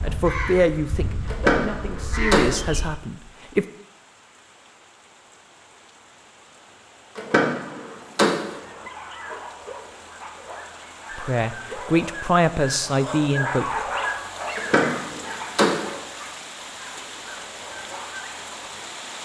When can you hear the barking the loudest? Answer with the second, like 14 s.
14 s.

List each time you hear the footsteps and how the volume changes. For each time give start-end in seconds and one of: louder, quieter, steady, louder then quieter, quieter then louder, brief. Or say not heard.
not heard.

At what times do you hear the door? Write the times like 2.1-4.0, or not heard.
1.2-2.7, 7.2-8.6, 14.6-15.9.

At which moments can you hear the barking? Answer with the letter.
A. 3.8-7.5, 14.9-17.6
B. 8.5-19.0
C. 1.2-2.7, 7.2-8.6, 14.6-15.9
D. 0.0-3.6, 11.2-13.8
B.